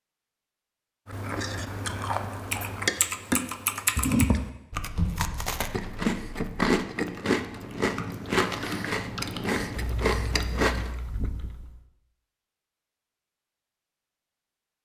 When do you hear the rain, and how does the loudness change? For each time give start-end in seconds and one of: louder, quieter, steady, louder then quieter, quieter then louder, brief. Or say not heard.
not heard.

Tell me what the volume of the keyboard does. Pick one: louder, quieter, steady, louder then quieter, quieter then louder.
quieter.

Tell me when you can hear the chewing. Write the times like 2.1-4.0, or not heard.
1.1-10.9.